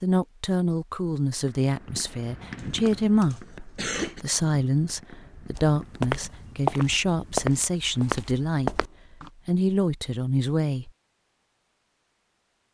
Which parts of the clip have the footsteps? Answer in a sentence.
You can hear the footsteps from 5.5 to 9.3 s.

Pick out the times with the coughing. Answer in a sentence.
The coughing can be heard from 2.5 to 4.2 s.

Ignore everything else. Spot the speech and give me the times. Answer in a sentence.
You can hear the speech from 0.0 to 8.8 s and from 9.4 to 10.9 s.